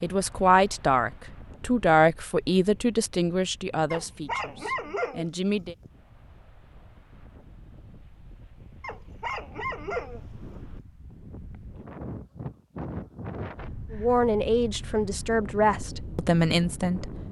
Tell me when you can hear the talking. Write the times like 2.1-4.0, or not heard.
0.0-5.8, 13.9-17.1.